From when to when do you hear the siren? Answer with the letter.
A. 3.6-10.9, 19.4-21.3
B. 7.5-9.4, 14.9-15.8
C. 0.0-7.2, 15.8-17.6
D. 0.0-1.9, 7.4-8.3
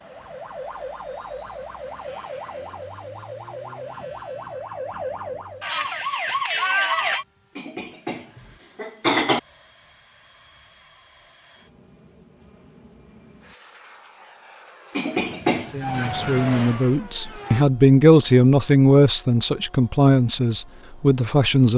C.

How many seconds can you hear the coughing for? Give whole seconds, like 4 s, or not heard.
3 s.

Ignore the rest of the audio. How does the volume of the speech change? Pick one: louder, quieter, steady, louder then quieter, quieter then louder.
louder then quieter.